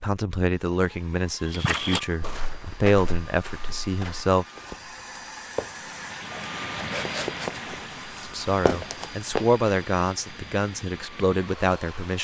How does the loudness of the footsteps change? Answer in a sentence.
The volume of the footsteps goes down, then up.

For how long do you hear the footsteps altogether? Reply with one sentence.
The footsteps can be heard for 8 seconds in total.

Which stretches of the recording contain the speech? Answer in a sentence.
The speech can be heard from 0.0 to 4.5 s and from 8.2 to 12.1 s.